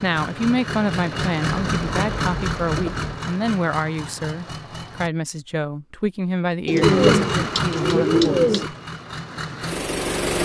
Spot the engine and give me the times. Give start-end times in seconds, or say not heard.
0.0-5.1, 6.8-10.3.